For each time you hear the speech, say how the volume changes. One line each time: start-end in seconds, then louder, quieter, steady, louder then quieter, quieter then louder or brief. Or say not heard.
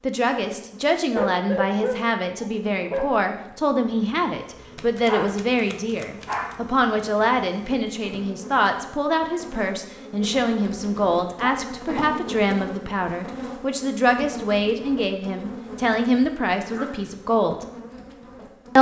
0.0-17.6 steady.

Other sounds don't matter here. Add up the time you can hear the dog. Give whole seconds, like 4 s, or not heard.
6 s.